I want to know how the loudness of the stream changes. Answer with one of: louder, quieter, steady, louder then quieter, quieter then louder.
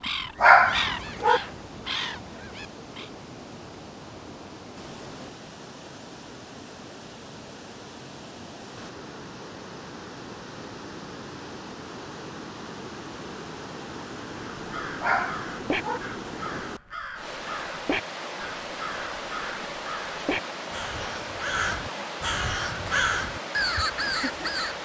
louder.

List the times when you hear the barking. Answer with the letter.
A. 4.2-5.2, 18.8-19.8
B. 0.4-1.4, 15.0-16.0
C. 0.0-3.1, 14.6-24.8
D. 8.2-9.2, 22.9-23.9
B.